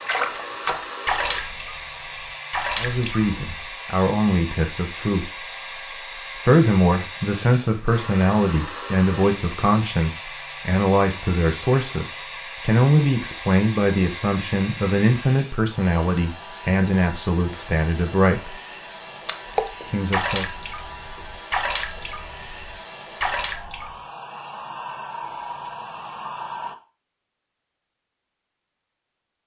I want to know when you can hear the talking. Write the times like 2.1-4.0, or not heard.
2.8-18.6, 19.9-20.4.